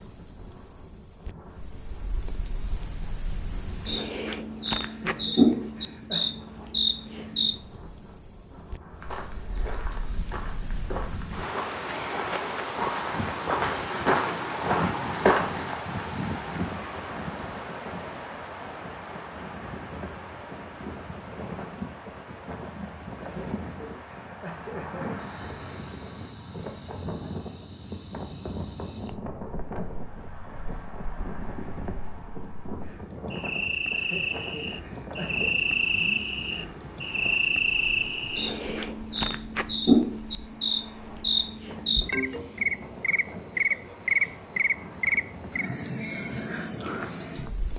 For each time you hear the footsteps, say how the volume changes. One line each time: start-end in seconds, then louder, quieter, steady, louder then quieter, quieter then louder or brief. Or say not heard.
9.0-15.8 louder.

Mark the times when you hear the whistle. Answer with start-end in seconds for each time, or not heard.
not heard.